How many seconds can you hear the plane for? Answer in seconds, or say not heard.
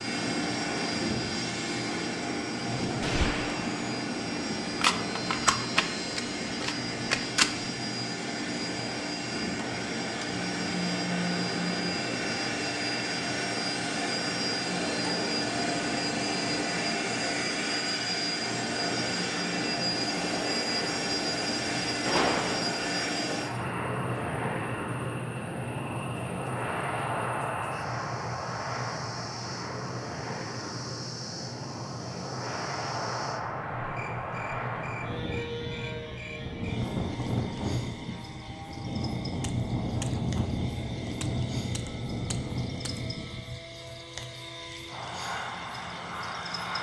47 s.